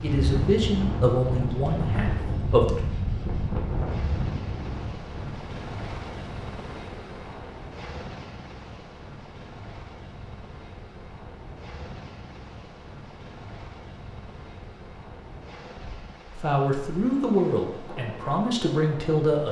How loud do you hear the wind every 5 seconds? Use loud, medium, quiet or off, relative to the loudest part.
loud, quiet, quiet, quiet.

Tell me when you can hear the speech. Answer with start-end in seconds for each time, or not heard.
0.0-2.8, 16.4-19.4.